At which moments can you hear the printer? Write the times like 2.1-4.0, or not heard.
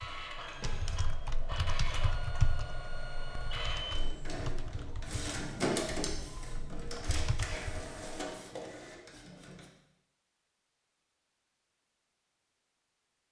0.0-9.7.